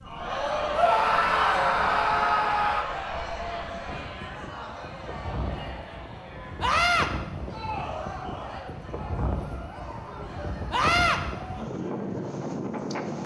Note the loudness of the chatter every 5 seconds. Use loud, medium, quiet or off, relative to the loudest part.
loud, medium, quiet.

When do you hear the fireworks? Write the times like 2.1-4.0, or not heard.
not heard.